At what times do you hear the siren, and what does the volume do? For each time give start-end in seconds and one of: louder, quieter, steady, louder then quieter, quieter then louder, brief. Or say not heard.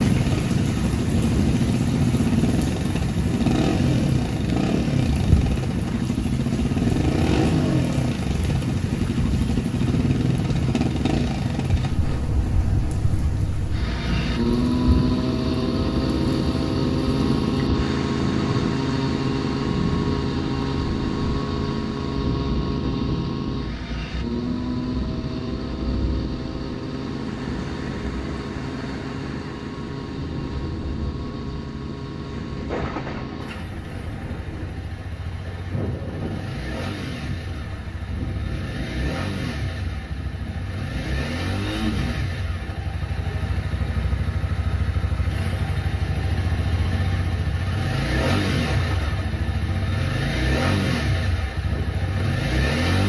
not heard.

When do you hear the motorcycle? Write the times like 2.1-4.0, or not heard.
0.0-53.0.